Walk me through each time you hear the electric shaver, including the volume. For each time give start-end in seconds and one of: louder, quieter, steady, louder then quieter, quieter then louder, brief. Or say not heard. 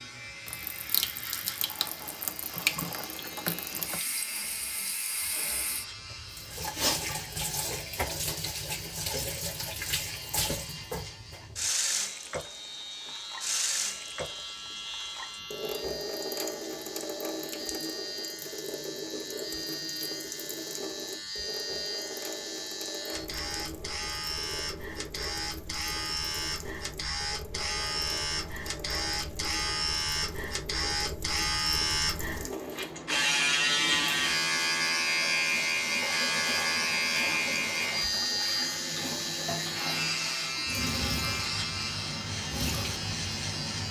0.0-43.8 louder.